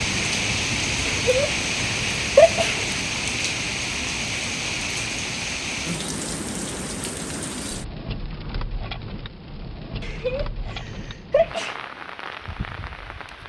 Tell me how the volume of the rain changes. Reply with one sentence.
The volume of the rain goes down.